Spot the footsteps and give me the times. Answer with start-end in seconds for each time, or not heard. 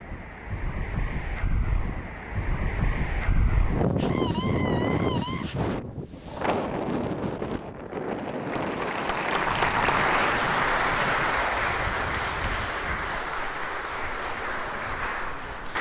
not heard.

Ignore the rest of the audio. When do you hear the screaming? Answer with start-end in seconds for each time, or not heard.
4.0-5.5.